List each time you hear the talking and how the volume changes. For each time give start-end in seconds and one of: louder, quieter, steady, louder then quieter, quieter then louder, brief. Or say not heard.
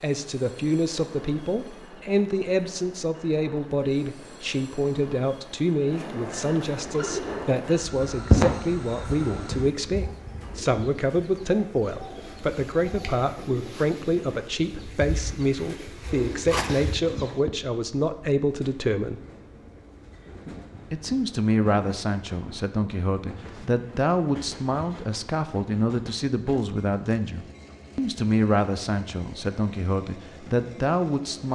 0.0-19.2 steady
20.9-31.4 steady.